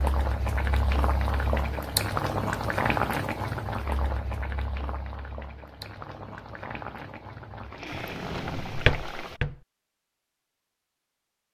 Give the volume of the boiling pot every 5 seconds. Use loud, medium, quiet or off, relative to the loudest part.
loud, medium, off.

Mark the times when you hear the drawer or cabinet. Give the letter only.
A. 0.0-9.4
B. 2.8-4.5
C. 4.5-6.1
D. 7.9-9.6
D.